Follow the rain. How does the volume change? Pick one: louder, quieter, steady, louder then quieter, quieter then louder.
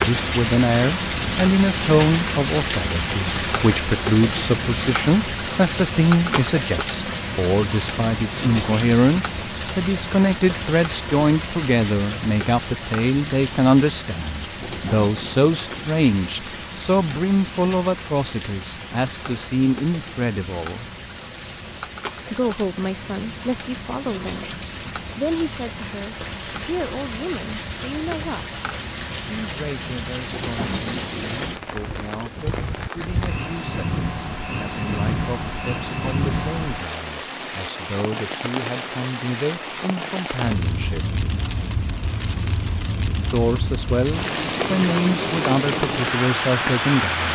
quieter then louder.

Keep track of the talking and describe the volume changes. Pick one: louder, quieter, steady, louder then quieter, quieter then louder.
quieter then louder.